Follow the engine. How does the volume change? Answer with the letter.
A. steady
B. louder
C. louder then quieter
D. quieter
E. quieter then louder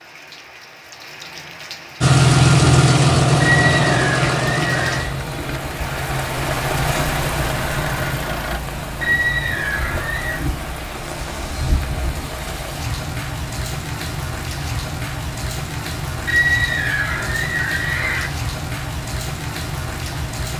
D.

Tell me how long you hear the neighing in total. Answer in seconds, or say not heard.
5 s.